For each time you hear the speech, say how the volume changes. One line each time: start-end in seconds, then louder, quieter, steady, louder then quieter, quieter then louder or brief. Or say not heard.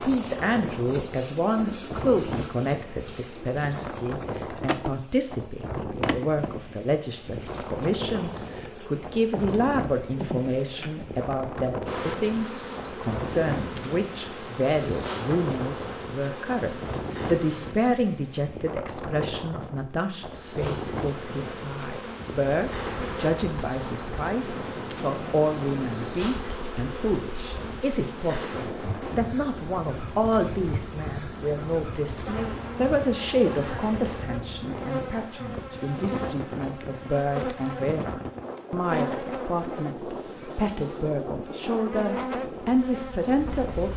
0.0-43.9 steady.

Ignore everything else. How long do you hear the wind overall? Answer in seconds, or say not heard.
44 s.